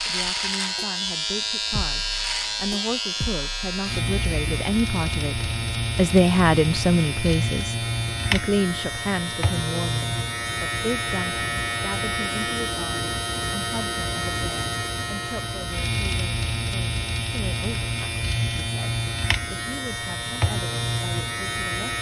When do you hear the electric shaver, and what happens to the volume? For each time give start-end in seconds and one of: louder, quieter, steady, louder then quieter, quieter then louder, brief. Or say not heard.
0.0-21.9 steady.